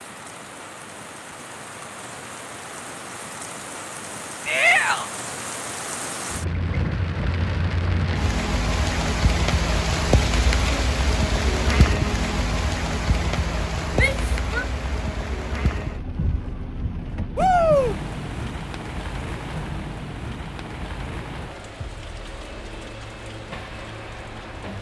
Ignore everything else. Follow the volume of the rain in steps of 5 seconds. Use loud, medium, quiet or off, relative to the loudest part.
medium, loud, loud, medium, medium.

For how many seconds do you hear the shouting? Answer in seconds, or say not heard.
2 s.